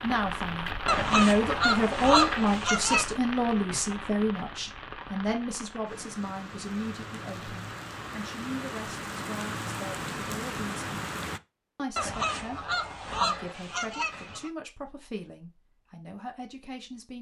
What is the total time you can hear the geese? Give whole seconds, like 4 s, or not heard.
5 s.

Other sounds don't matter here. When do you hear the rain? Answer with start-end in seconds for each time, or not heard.
0.0-11.4.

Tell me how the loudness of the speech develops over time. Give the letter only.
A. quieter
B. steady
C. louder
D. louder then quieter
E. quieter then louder
A.